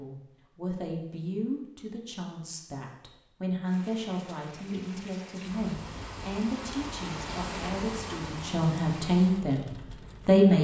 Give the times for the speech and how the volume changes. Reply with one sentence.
The speech can be heard from 0.0 to 10.5 s, getting louder.